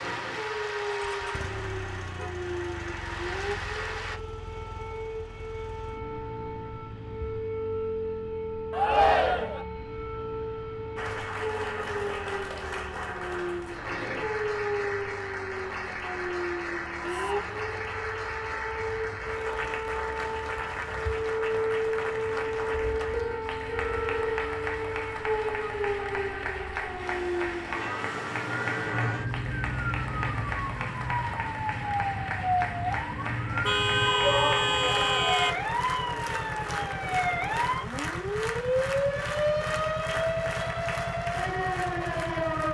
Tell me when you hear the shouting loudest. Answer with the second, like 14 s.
9 s.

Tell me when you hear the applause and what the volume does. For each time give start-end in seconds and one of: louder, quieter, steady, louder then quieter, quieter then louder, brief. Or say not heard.
0.0-4.2 quieter then louder
10.9-42.7 steady.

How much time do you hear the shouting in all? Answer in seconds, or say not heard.
3 s.